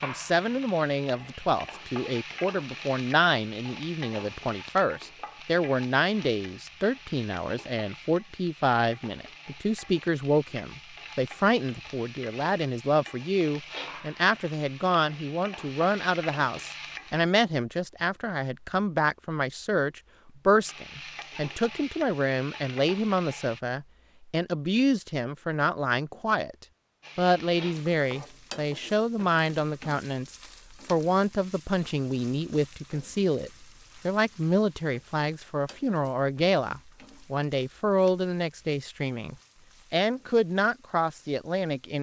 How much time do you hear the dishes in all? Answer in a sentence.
The dishes can't be heard in this clip.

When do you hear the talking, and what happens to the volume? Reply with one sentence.
You can hear the talking from 0.0 to 41.9 s, at a steady volume.